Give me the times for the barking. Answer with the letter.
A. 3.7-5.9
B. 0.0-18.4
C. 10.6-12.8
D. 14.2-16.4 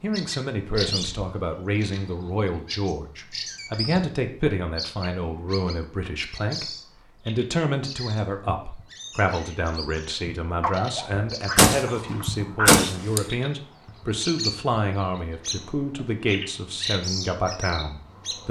C.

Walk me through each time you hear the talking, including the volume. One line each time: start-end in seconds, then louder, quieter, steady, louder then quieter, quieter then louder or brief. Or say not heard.
0.0-18.4 steady.